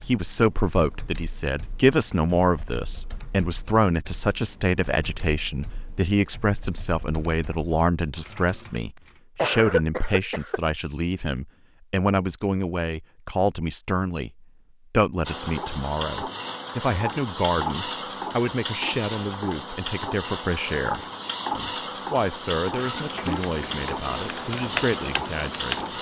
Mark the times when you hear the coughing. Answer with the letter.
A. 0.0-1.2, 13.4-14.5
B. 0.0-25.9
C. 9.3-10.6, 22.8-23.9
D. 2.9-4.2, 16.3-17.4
C.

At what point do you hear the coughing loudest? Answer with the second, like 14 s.
10 s.